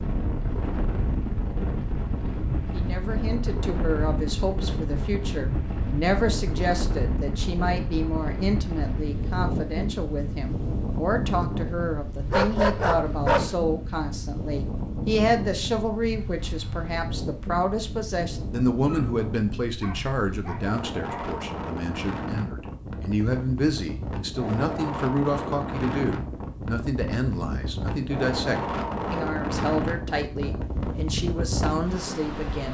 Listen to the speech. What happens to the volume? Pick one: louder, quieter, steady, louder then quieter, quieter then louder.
steady.